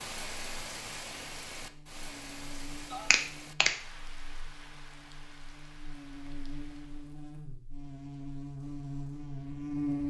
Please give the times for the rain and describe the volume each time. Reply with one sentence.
You can hear the rain from 0.0 to 7.2 s, getting quieter.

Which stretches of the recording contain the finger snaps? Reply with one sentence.
The finger snaps can be heard from 2.9 to 3.7 s.